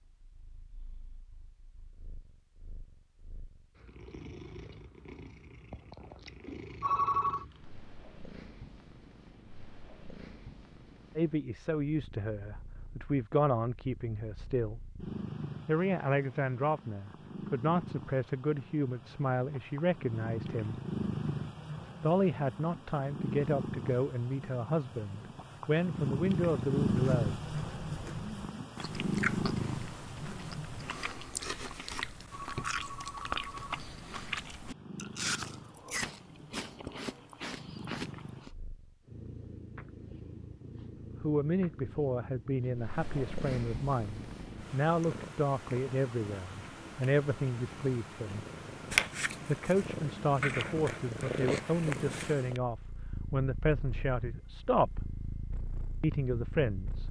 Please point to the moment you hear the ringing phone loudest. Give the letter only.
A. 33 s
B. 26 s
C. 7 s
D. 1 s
C.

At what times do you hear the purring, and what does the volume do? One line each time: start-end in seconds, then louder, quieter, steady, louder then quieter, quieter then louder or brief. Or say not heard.
0.0-31.0 louder
33.5-57.0 louder then quieter.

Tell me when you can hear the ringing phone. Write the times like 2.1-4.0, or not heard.
6.8-7.5, 32.3-33.8.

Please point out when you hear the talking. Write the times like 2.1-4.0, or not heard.
11.2-14.8, 15.7-20.8, 22.0-27.4, 41.2-48.4, 49.5-55.0, 56.0-57.0.